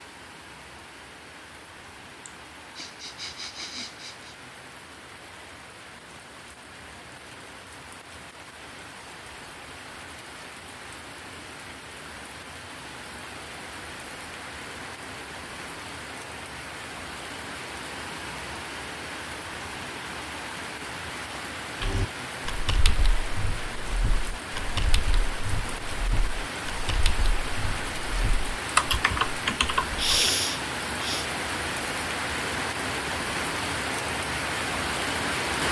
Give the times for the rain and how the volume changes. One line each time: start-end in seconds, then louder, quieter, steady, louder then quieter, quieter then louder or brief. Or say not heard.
0.0-35.6 louder.